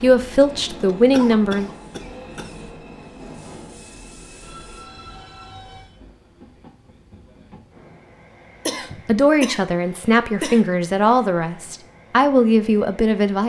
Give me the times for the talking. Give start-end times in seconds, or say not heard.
0.0-1.7, 9.1-13.4.